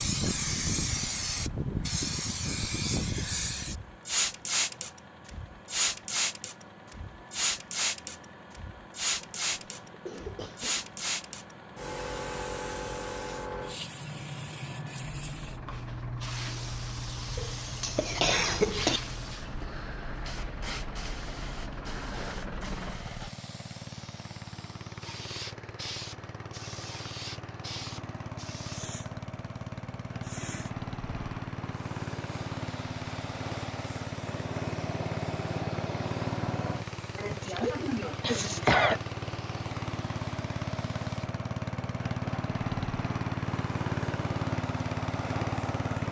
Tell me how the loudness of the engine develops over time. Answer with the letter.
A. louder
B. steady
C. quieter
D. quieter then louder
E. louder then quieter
A.